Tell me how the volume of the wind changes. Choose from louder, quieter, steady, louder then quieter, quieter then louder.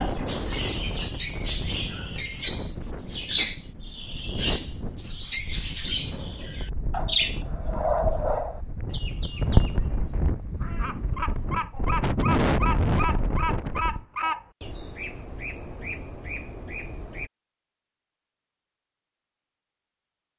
louder.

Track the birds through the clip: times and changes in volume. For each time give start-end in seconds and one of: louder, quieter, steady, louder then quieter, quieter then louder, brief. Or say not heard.
0.0-17.3 quieter.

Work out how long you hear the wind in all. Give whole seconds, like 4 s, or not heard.
14 s.